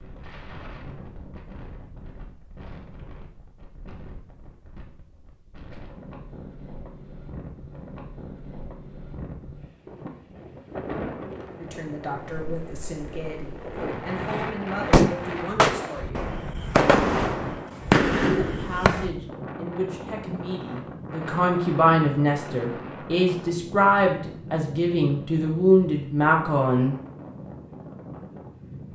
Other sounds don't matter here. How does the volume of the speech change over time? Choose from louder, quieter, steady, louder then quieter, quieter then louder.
louder.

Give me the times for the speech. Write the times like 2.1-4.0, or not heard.
11.6-16.4, 18.3-26.9.